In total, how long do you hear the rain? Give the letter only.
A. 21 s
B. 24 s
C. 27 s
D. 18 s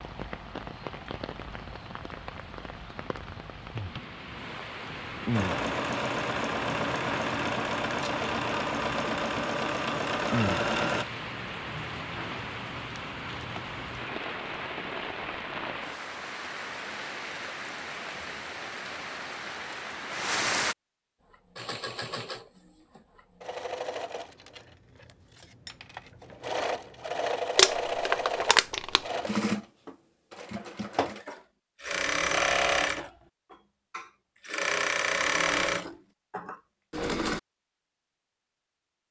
A.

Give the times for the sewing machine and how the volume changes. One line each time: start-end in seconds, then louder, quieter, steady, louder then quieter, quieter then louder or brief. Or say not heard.
5.3-11.1 steady
21.3-37.4 louder.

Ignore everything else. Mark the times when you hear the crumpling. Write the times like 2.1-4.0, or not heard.
27.6-29.0.